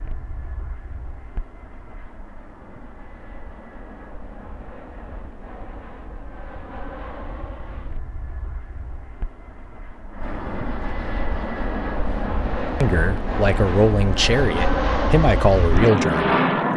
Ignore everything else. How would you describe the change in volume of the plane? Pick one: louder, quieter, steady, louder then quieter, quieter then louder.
louder.